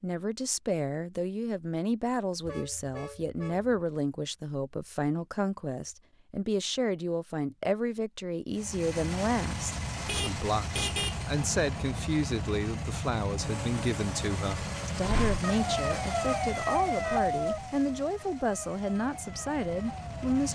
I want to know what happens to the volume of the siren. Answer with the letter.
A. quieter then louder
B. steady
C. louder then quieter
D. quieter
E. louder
D.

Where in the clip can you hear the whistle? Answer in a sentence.
The whistle can't be heard in this clip.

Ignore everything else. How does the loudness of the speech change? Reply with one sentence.
The volume of the speech stays about the same.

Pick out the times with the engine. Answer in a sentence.
The engine can be heard from 8.5 to 20.5 s.